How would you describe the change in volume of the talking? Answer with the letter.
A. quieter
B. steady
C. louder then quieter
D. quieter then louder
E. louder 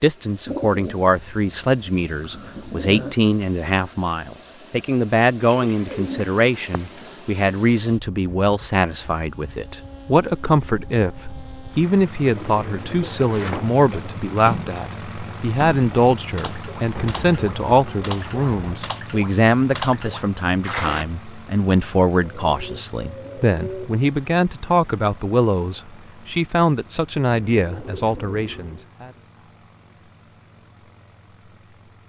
B.